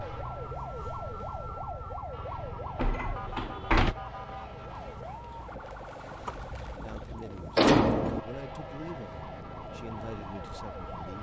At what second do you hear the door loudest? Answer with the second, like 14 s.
8 s.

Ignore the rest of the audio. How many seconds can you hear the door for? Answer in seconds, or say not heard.
3 s.